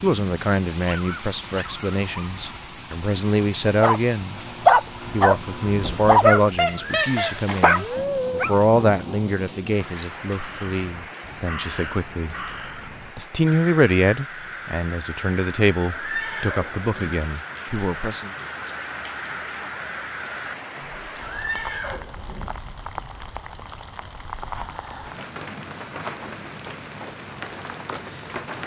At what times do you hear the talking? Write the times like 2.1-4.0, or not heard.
0.0-4.4, 5.1-12.3, 13.2-18.3.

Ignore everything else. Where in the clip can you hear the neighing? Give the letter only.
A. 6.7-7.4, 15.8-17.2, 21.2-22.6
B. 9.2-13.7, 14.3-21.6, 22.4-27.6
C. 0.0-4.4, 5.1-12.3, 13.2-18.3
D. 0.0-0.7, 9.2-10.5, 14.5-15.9
A.